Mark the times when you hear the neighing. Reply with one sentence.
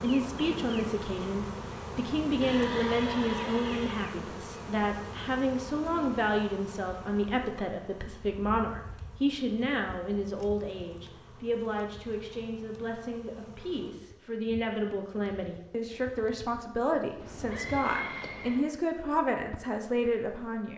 The neighing can be heard from 2.4 to 4.0 s and from 17.2 to 18.6 s.